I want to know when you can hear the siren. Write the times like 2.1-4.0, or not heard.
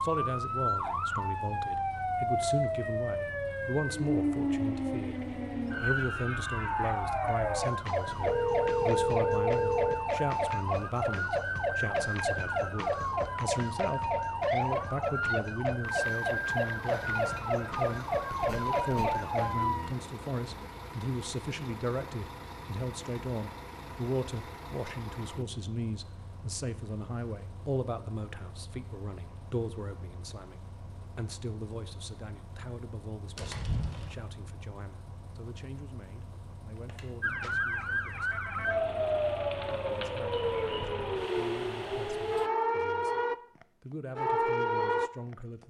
0.0-19.9, 37.2-45.4.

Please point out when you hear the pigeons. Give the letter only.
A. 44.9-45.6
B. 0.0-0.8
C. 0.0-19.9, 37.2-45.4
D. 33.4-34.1
D.